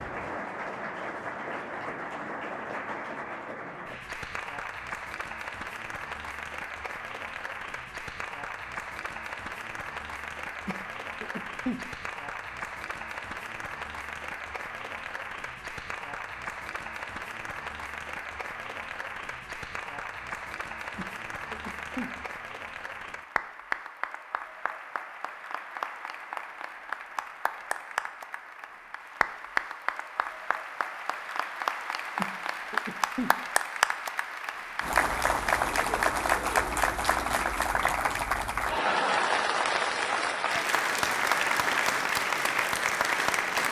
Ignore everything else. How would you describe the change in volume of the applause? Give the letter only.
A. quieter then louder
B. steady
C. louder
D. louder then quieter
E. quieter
C.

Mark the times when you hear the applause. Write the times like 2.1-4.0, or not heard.
0.0-43.6.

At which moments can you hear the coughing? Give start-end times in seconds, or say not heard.
10.7-11.8, 20.9-22.6, 32.1-33.4.